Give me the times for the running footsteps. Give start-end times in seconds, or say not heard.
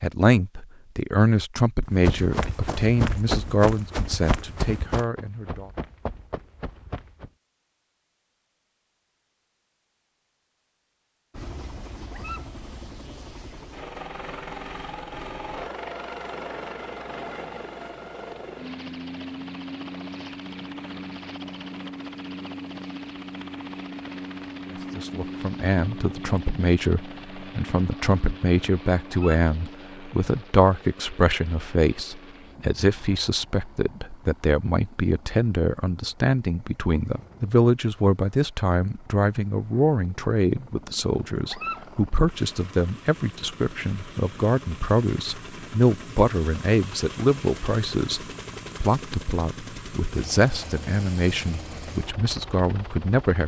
1.9-7.3.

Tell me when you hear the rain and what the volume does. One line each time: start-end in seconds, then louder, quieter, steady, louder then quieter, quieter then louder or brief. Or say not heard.
not heard.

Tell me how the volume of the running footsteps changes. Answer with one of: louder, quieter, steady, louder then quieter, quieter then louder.
quieter.